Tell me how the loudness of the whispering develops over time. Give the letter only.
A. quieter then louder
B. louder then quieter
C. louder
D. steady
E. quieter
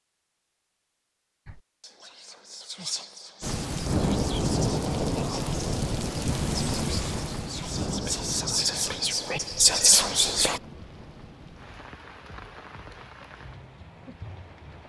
C.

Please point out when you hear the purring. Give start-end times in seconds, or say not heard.
not heard.